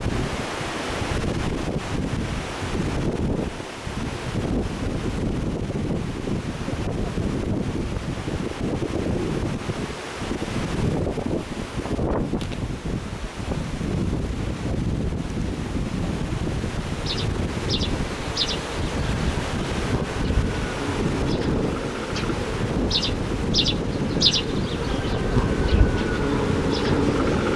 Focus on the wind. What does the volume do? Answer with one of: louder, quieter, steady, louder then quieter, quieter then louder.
steady.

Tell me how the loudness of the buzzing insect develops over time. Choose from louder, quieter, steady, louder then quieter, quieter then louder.
louder.